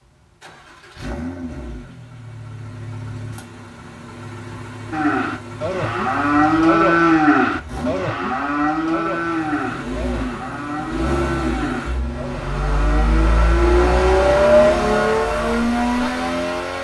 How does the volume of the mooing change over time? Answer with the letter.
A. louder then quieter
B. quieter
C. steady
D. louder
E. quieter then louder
B.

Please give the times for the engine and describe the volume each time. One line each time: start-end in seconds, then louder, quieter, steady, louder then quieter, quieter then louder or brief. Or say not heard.
0.0-16.7 louder.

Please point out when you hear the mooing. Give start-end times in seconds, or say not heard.
4.9-16.1.